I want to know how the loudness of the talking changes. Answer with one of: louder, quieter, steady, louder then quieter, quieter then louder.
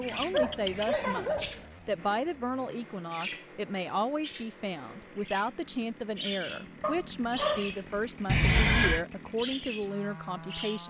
steady.